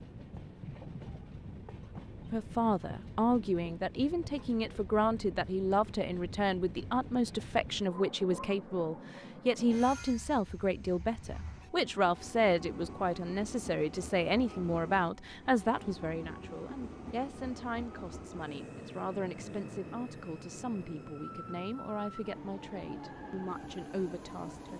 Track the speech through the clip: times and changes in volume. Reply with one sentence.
You can hear the speech from 2.3 to 24.7 s, getting quieter.